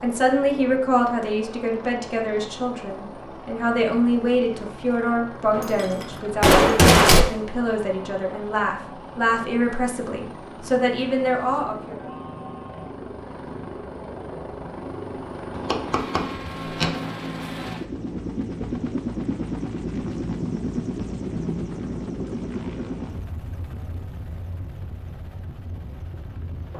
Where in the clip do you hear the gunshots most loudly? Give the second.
7 s.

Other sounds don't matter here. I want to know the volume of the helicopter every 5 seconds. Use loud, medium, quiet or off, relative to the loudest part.
medium, medium, medium, loud, loud, medium.